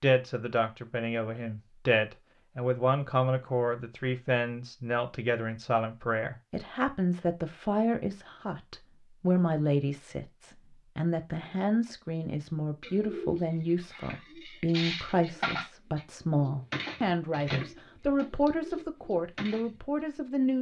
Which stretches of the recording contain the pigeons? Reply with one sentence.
You can hear the pigeons from 12.8 to 19.8 s.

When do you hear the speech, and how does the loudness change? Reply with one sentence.
You can hear the speech from 0.0 to 20.5 s, at a steady volume.